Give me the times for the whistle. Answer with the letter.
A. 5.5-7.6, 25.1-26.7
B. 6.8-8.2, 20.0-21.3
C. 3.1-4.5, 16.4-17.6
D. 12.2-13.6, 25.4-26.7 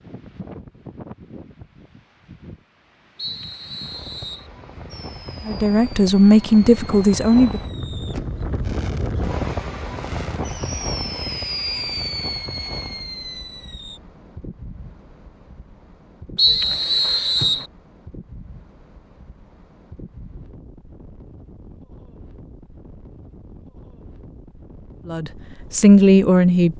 C.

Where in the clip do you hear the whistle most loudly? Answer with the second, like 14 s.
17 s.